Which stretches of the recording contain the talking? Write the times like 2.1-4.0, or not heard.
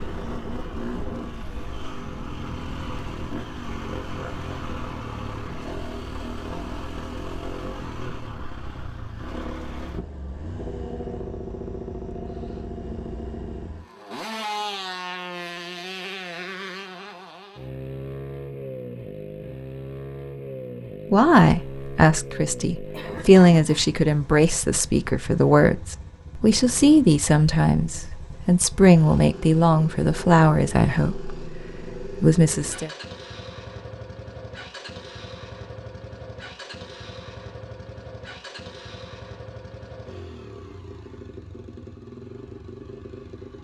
21.1-32.9.